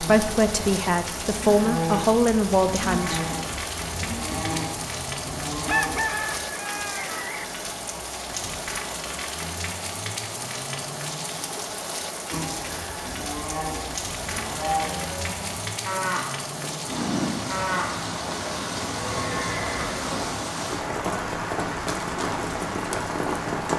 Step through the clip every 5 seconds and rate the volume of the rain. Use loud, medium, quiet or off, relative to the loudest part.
medium, medium, medium, loud, loud.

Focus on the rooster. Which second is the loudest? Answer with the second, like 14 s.
6 s.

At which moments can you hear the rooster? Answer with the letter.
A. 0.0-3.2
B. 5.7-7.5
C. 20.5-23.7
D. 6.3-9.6
B.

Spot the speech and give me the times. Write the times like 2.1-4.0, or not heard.
0.0-3.2.